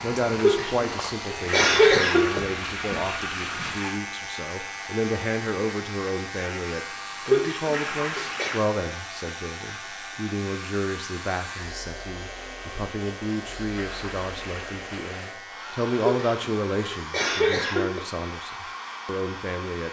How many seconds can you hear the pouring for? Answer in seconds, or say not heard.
5 s.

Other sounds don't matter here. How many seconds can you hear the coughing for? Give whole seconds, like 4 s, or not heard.
5 s.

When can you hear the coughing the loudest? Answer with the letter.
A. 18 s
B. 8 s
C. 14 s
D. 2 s
D.